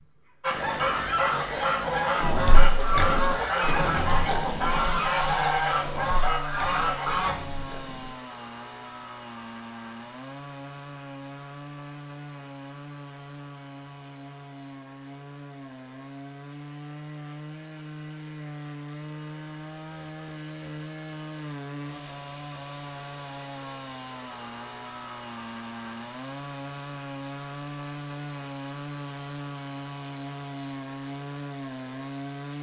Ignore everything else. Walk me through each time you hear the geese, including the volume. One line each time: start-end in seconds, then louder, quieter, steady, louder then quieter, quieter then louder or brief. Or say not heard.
0.4-7.3 steady.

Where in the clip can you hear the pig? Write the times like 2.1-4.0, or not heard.
2.2-8.1.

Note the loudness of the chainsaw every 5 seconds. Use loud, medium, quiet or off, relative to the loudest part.
loud, loud, medium, loud, loud, loud, loud.